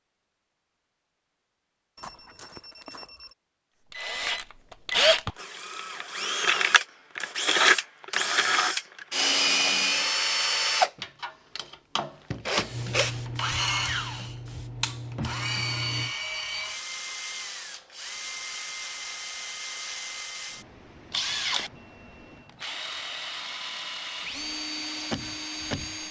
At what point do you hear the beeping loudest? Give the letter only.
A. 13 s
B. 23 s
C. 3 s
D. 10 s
D.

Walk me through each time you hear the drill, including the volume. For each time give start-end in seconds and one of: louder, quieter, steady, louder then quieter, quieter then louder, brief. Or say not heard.
3.9-26.0 quieter.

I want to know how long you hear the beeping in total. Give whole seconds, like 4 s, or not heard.
3 s.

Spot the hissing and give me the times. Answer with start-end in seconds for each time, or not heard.
12.7-16.1.